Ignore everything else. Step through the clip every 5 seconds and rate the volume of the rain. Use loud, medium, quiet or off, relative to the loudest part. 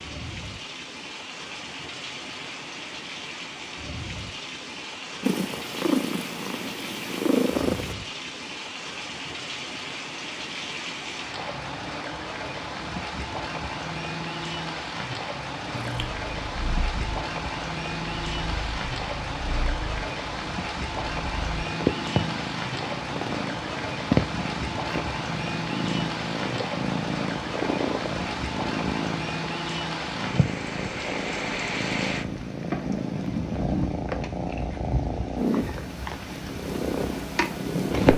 medium, medium, loud, loud, loud, loud, loud, loud.